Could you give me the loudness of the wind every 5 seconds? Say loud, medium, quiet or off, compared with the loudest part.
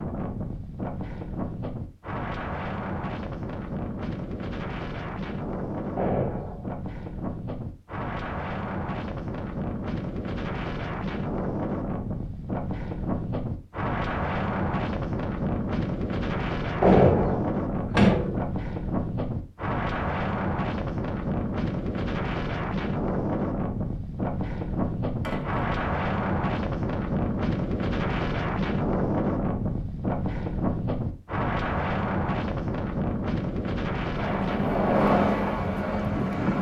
medium, medium, loud, loud, loud, loud, loud, loud.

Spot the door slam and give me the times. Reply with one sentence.
You can hear the door slam from 6.0 to 6.8 s, from 16.8 to 18.5 s and from 25.2 to 25.6 s.